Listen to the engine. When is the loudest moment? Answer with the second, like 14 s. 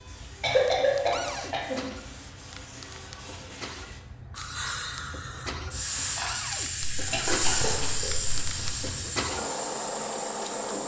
10 s.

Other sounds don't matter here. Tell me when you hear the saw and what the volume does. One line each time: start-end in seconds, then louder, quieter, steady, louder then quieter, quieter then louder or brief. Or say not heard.
not heard.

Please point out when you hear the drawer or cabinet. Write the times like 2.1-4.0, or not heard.
1.1-1.6, 6.2-6.7.